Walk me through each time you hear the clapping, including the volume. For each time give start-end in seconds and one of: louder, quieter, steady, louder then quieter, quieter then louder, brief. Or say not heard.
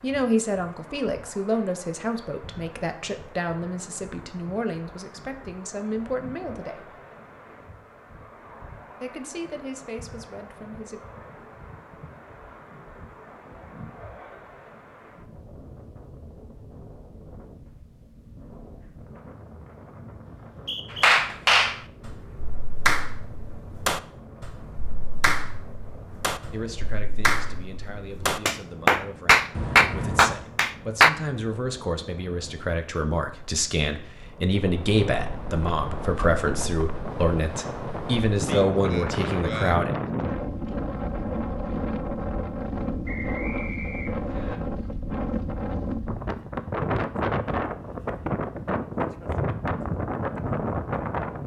20.9-31.1 quieter then louder.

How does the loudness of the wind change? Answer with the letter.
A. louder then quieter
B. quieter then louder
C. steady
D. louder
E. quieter
D.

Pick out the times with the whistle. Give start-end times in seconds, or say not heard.
20.3-21.1, 43.0-44.6.